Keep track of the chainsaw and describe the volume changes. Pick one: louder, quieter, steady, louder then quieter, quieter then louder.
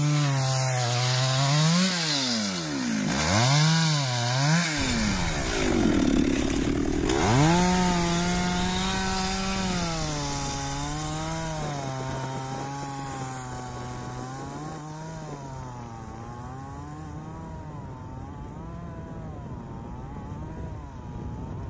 quieter.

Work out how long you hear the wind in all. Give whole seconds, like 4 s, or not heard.
17 s.